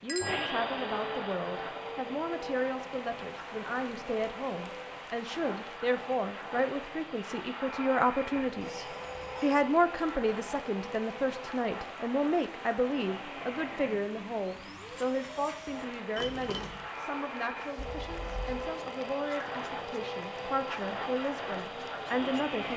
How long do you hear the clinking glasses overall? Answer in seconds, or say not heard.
2 s.